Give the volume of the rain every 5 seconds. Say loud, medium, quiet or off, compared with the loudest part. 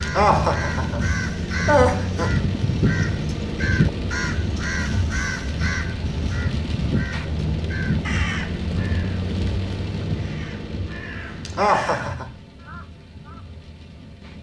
loud, loud, medium.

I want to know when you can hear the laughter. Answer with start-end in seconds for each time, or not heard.
0.0-2.4, 11.4-12.3.